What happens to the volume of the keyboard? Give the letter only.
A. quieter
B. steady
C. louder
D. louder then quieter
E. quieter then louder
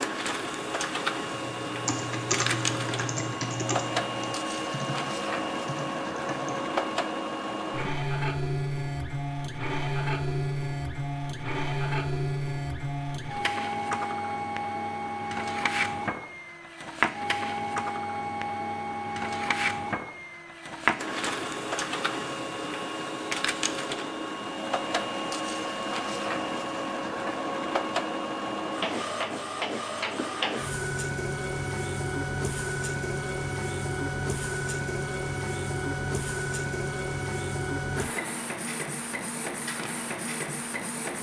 A.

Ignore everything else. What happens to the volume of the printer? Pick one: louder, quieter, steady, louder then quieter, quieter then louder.
steady.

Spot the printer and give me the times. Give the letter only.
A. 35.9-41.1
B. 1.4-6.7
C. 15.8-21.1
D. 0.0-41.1
D.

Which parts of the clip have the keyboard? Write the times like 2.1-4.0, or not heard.
1.4-6.7.